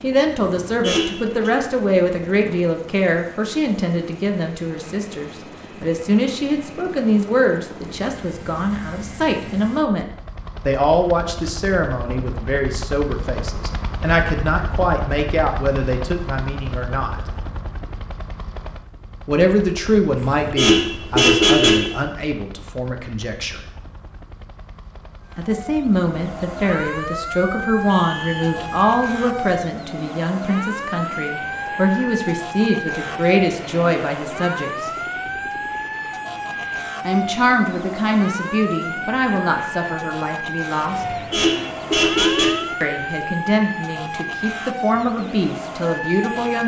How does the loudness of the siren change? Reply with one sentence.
The loudness of the siren stays about the same.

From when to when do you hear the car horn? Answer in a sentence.
The car horn can be heard from 0.5 to 1.5 s, from 20.1 to 21.9 s and from 41.0 to 42.7 s.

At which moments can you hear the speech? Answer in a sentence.
The speech can be heard from 0.0 to 10.1 s, from 10.7 to 17.1 s, from 19.2 to 23.6 s, from 25.4 to 34.9 s, from 37.0 to 41.1 s and from 42.8 to 46.6 s.